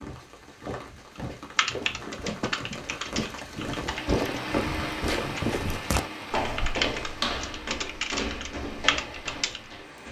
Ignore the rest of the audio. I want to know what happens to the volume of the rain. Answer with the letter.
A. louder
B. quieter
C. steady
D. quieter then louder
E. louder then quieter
E.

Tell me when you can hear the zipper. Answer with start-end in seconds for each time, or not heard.
not heard.